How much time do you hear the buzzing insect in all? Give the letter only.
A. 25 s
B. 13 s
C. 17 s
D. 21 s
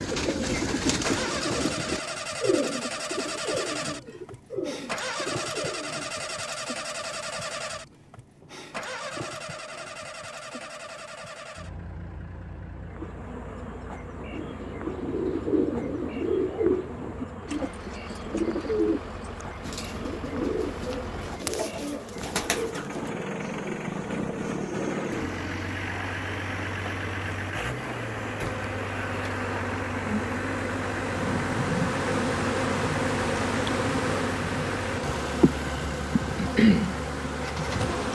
A.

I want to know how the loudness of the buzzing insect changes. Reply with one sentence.
The volume of the buzzing insect goes up.